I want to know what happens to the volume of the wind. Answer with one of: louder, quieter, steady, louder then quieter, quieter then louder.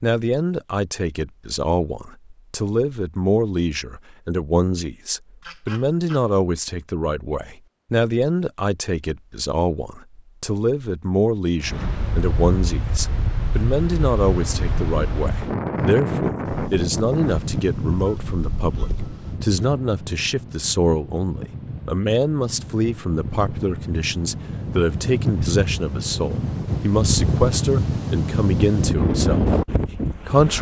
quieter then louder.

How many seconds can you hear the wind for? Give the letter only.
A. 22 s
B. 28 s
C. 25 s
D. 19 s
D.